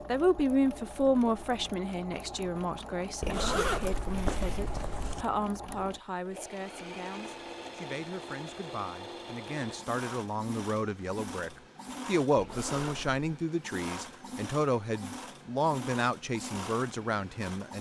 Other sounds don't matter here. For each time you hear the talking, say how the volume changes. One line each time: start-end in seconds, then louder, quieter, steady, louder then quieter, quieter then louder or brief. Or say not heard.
0.1-17.7 quieter then louder.